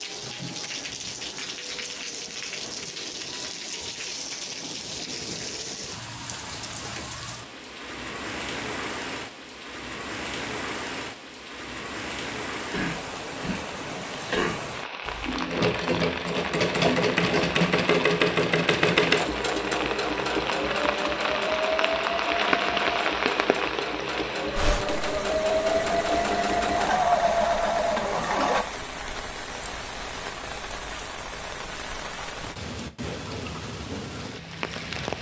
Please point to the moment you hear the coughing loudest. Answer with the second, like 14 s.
14 s.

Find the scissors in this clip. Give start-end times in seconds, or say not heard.
not heard.